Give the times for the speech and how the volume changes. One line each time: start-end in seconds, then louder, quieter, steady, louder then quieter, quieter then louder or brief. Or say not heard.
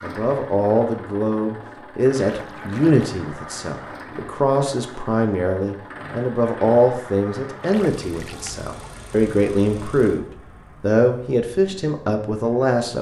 0.0-12.9 steady.